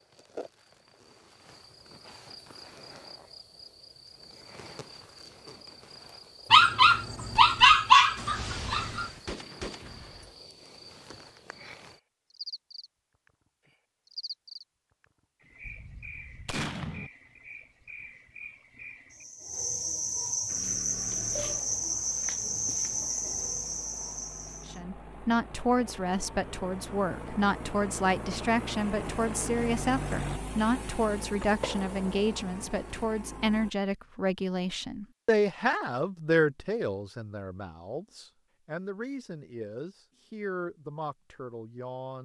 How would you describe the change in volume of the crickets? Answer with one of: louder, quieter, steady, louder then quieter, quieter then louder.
louder.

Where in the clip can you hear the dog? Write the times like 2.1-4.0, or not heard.
6.5-9.1.